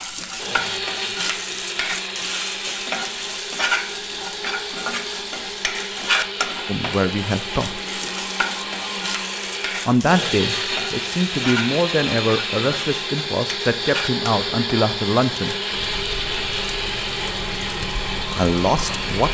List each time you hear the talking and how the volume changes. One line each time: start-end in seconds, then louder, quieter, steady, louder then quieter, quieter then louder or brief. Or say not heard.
6.7-7.8 brief
9.8-15.6 steady
17.8-19.2 brief.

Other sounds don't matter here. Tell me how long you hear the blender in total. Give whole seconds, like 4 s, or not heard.
19 s.